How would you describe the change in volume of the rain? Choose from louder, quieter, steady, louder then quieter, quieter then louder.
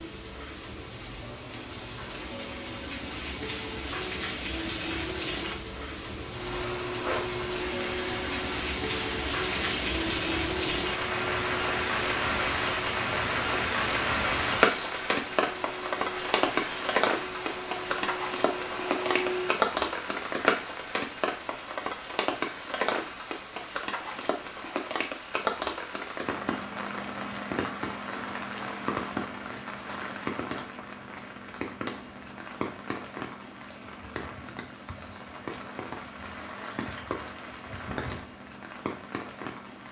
louder then quieter.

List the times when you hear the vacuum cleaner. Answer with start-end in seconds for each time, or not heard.
6.2-19.7.